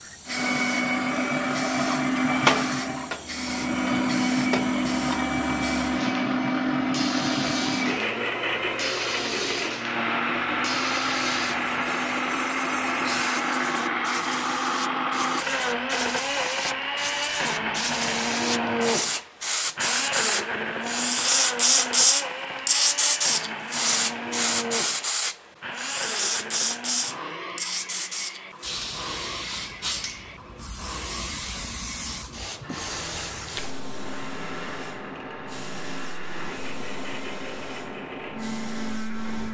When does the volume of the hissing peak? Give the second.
22 s.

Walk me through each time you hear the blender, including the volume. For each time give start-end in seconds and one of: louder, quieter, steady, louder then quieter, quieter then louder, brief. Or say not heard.
0.0-39.4 quieter.